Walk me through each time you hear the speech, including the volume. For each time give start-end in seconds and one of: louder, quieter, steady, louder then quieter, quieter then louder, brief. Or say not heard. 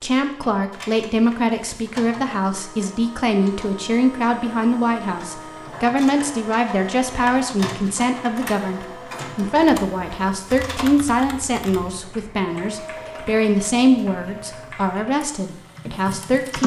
0.0-16.6 steady.